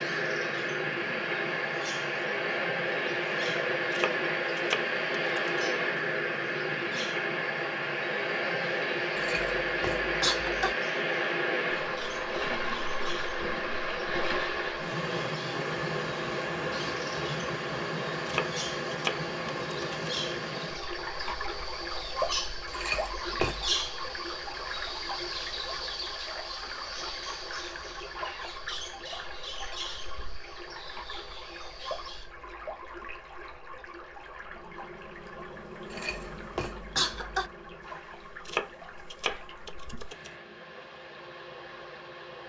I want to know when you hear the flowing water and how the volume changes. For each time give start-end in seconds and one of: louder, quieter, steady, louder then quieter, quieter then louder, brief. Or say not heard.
0.0-42.4 quieter.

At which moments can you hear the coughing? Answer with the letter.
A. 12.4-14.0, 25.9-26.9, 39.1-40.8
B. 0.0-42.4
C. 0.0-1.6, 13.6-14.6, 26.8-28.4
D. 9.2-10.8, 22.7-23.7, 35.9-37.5
D.